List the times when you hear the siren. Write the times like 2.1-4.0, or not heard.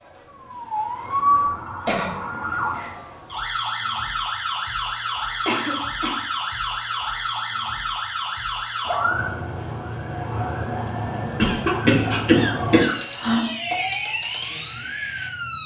0.0-15.6.